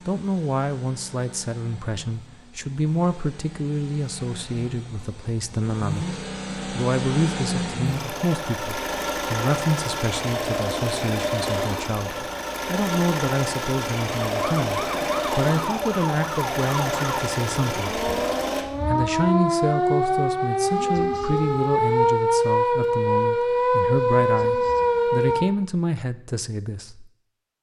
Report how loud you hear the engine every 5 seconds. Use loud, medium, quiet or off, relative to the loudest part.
quiet, loud, loud, loud, off, off.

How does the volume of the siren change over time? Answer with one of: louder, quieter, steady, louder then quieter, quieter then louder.
louder.